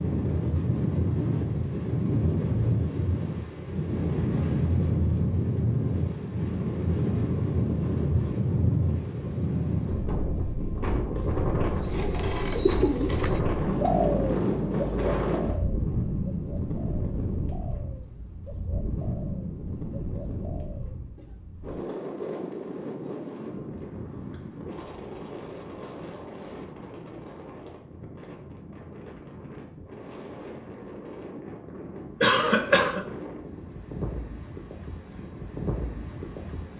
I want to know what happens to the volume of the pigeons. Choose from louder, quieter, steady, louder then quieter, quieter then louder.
quieter.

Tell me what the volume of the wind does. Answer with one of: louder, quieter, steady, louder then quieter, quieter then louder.
quieter.